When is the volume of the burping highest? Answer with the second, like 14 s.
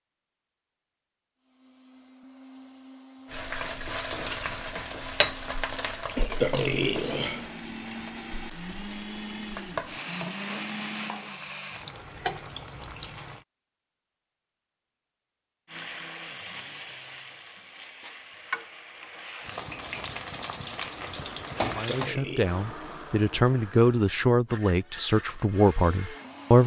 7 s.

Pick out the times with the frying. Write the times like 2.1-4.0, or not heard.
3.2-13.4, 15.7-22.1.